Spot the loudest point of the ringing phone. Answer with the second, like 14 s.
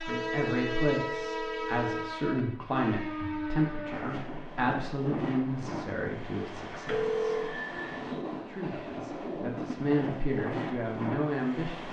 7 s.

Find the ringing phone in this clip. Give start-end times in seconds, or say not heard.
0.1-2.1, 6.8-7.5.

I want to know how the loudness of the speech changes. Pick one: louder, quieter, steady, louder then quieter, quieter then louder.
quieter then louder.